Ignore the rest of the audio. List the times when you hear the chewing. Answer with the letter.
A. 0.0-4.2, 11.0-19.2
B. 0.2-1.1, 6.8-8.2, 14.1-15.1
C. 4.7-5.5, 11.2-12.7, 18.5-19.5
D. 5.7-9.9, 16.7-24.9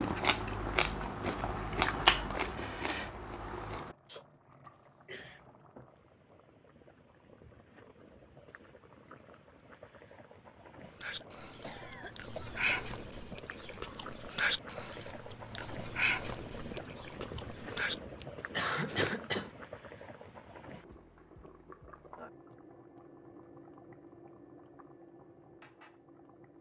A.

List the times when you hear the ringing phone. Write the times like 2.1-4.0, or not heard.
not heard.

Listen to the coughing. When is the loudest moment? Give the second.
19 s.